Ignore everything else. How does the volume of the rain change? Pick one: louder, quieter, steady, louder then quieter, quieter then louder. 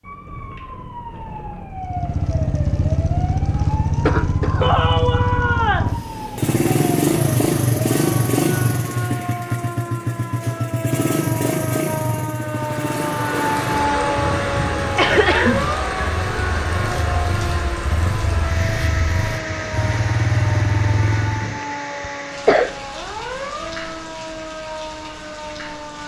quieter.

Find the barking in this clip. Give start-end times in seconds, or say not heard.
not heard.